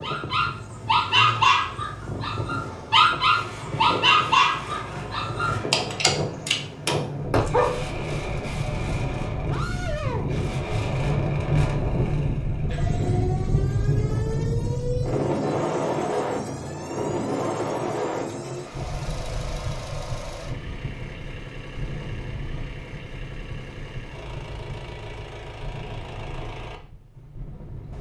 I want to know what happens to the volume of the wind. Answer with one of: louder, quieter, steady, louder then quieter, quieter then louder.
louder then quieter.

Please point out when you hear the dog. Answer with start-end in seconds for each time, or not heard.
0.0-7.8.